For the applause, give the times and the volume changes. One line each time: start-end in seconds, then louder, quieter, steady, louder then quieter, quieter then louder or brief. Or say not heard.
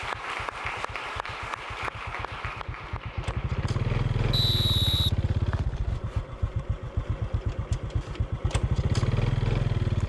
0.0-5.0 quieter.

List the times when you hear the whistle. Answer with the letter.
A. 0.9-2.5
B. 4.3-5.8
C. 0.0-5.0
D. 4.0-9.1
B.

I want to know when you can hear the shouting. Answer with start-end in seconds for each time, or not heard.
not heard.